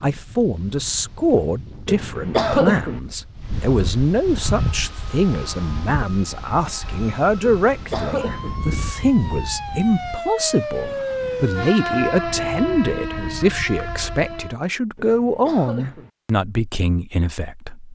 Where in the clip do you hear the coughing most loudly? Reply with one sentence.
The loudest moment of the coughing is at 3 seconds.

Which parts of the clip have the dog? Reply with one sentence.
The dog can't be heard in this clip.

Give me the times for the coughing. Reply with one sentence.
The coughing can be heard from 1.9 to 3.0 s, from 7.4 to 8.6 s and from 14.9 to 16.1 s.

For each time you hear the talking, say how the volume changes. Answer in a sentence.
You can hear the talking from 0.0 to 17.8 s, at a steady volume.